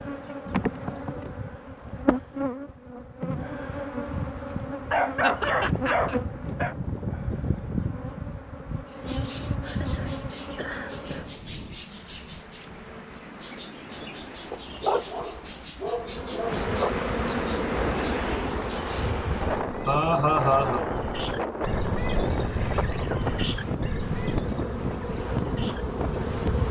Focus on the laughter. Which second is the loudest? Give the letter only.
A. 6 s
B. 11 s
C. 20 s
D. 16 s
C.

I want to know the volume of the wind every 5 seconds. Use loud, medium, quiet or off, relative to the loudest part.
off, off, quiet, loud, loud, loud.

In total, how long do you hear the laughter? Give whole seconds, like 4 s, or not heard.
4 s.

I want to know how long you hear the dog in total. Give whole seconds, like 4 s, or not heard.
4 s.